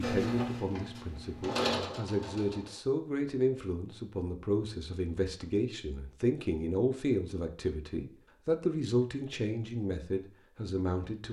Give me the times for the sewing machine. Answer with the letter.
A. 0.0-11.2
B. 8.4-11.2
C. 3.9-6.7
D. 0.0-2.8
D.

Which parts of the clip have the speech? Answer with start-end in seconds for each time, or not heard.
0.0-11.2.